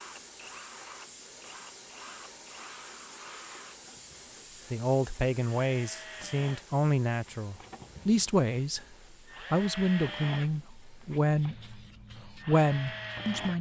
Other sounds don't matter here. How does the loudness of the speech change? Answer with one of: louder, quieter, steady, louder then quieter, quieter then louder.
steady.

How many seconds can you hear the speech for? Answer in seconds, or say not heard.
8 s.